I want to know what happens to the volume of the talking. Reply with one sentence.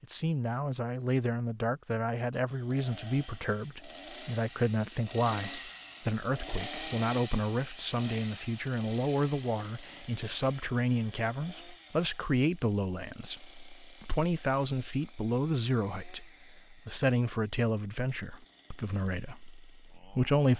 The volume of the talking stays about the same.